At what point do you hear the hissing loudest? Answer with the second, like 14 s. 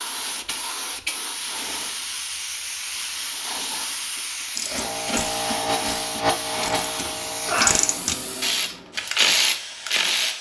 6 s.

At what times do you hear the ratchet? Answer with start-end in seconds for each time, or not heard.
4.5-10.3.